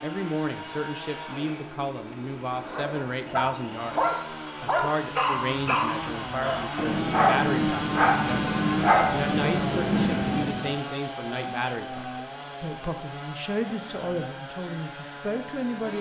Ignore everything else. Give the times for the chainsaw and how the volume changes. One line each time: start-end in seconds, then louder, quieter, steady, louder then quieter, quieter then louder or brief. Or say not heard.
0.0-15.9 louder then quieter.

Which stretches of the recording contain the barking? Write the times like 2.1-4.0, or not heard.
2.5-10.7.